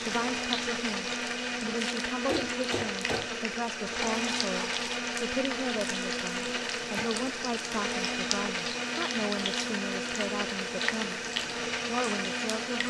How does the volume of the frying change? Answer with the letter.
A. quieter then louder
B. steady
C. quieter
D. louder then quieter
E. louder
B.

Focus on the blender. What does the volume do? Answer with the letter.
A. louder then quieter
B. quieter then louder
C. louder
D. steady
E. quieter
D.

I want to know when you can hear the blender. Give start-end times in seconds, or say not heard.
0.0-12.8.